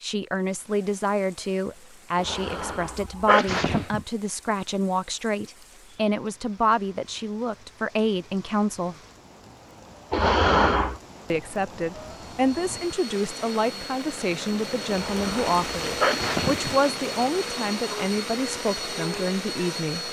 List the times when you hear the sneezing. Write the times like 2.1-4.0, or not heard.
2.1-4.0, 10.1-10.9, 14.9-16.8.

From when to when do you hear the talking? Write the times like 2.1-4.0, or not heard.
0.0-8.9, 11.3-20.0.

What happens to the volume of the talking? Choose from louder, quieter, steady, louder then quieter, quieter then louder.
steady.